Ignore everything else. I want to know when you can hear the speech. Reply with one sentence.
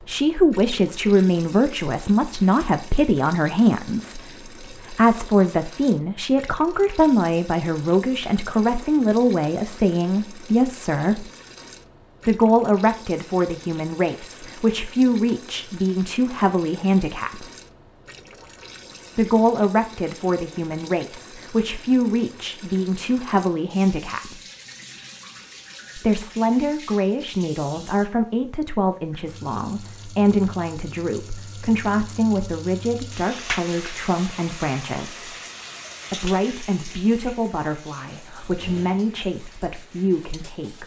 The speech can be heard from 0.1 to 11.3 s, from 12.2 to 17.4 s, from 19.1 to 24.4 s, from 25.9 to 35.4 s and from 36.1 to 40.8 s.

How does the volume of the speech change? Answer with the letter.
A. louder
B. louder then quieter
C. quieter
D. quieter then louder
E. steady
C.